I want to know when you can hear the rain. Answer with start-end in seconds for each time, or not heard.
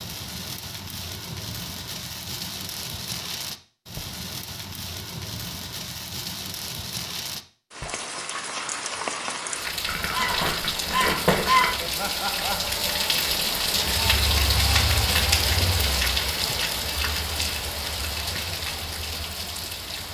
0.0-20.0.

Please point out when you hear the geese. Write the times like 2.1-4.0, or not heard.
9.8-11.8.